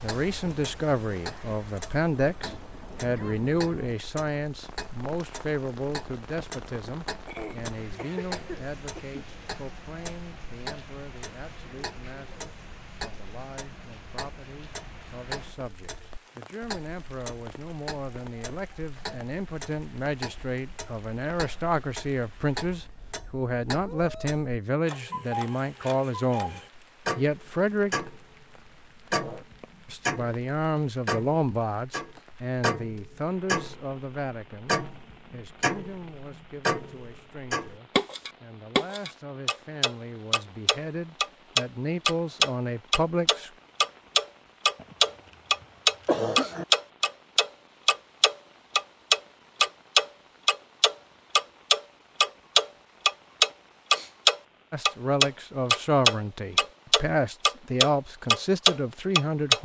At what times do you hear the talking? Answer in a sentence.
You can hear the talking from 0.0 to 28.1 s, from 29.9 to 43.5 s and from 54.7 to 59.5 s.